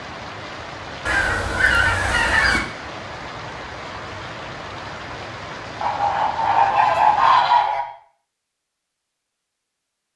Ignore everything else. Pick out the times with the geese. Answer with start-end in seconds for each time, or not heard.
1.1-2.6, 5.8-7.8.